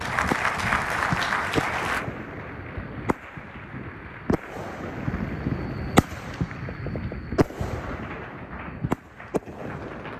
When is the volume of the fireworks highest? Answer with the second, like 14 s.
6 s.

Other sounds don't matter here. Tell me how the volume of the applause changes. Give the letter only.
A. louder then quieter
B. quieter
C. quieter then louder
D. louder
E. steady
B.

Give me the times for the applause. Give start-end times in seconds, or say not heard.
0.0-10.1.